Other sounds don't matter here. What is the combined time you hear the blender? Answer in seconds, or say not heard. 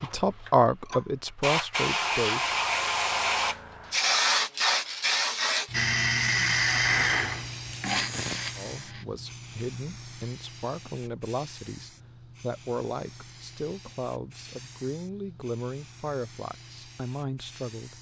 3 s.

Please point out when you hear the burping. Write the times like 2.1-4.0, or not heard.
not heard.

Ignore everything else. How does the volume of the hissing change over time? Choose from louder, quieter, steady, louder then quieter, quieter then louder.
quieter.